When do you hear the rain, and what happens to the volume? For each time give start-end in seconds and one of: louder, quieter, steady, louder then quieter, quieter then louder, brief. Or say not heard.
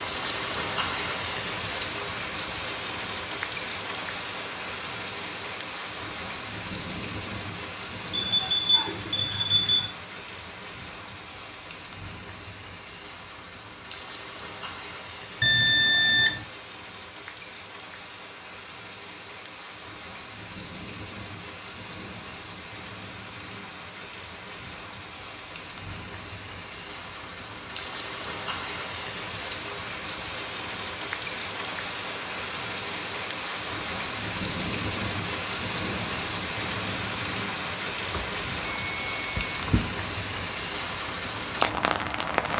0.0-42.5 quieter then louder.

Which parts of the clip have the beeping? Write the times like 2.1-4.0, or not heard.
8.1-9.9, 15.4-16.4, 38.1-39.8.